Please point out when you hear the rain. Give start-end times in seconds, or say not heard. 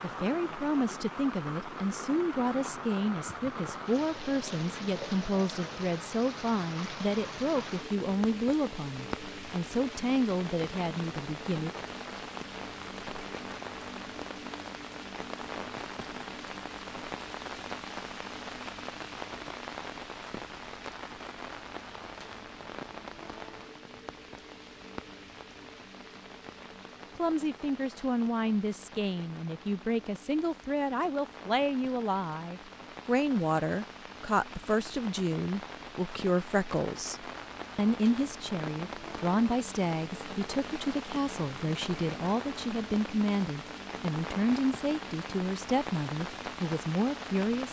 0.0-47.6.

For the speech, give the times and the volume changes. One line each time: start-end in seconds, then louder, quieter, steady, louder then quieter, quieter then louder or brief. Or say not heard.
0.0-11.7 steady
27.1-47.6 steady.